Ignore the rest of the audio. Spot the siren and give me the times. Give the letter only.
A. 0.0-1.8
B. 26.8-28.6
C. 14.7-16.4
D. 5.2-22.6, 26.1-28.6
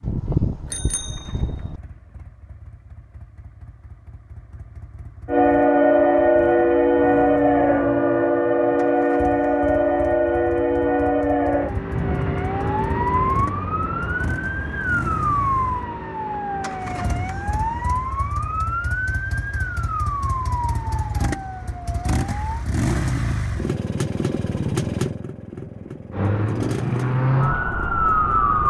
D.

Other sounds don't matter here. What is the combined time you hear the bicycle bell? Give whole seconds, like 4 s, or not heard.
2 s.